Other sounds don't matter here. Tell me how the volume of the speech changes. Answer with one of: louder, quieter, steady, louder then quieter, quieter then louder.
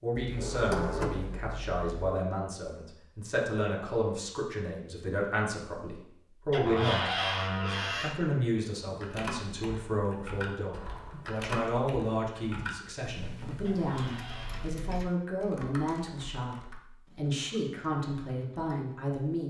steady.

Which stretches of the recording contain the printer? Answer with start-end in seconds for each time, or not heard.
not heard.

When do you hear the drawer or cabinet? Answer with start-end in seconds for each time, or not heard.
0.1-2.1, 6.5-8.2, 13.7-14.7.